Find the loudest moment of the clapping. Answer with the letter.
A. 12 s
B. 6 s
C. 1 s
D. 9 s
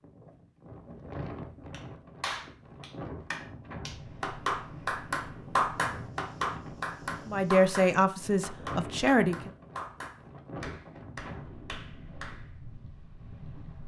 B.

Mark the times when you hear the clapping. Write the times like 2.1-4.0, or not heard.
1.7-12.4.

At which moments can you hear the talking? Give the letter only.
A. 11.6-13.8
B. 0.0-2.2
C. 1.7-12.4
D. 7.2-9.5
D.